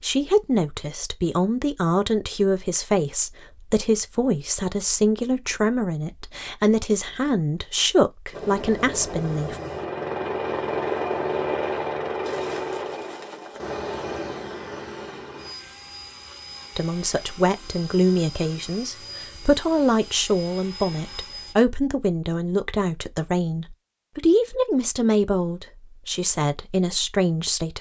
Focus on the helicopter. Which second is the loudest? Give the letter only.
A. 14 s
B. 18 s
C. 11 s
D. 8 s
C.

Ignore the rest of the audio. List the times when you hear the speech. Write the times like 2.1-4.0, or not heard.
0.0-9.6, 16.8-27.7.